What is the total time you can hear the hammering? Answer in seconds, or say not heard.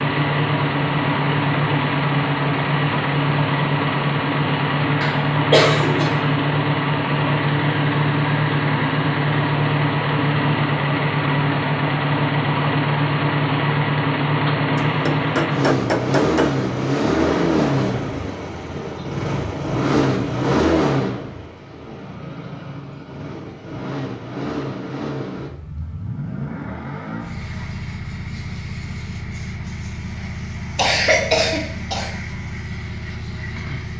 2 s.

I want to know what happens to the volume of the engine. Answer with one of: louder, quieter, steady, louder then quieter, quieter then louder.
quieter.